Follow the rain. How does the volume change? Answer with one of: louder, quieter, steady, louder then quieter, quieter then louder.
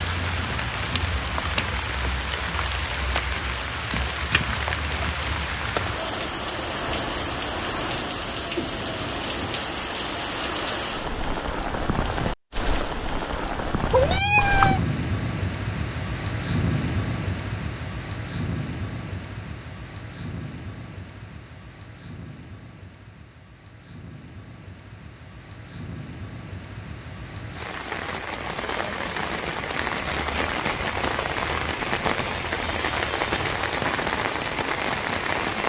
quieter then louder.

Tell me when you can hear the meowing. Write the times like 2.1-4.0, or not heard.
13.9-14.8.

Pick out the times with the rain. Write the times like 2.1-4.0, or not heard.
0.0-35.6.